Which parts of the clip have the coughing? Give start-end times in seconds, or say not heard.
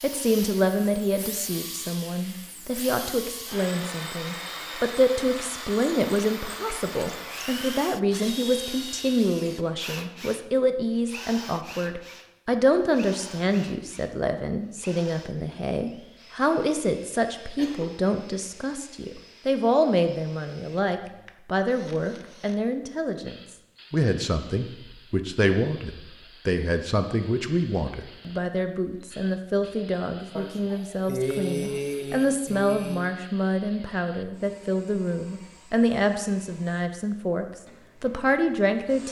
5.9-6.8, 17.6-18.1, 30.4-33.1.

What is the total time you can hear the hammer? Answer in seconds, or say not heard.
not heard.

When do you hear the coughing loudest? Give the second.
31 s.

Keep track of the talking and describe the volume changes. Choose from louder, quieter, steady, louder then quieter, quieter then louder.
steady.